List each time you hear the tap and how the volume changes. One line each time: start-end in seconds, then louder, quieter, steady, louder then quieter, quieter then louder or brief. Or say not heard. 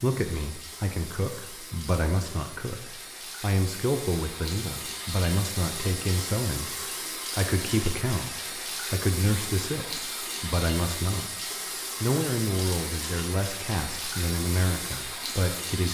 0.0-15.8 louder.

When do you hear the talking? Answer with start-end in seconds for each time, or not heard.
0.0-6.8, 7.3-11.3, 12.0-15.8.